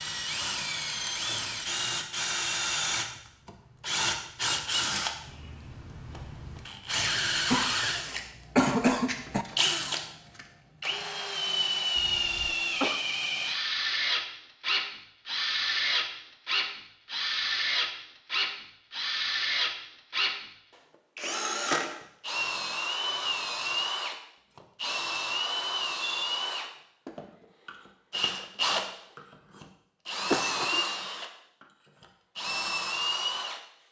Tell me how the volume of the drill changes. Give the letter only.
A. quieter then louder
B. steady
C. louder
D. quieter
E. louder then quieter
B.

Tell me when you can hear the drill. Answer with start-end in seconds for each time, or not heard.
0.0-33.6.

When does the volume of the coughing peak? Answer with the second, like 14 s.
9 s.